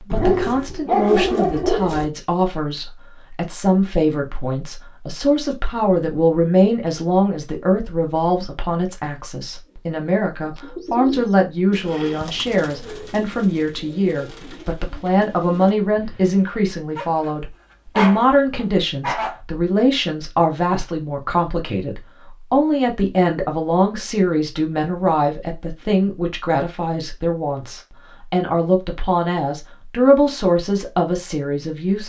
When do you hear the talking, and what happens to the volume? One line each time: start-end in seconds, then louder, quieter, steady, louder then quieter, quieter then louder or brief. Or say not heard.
0.0-32.0 steady.